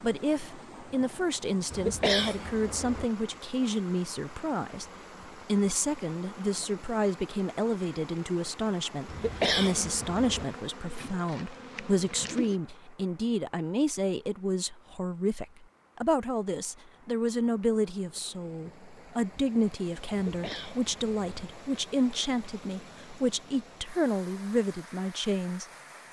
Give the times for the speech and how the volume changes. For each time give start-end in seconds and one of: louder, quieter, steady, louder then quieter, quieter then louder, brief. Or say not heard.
0.0-4.8 steady
5.5-25.6 steady.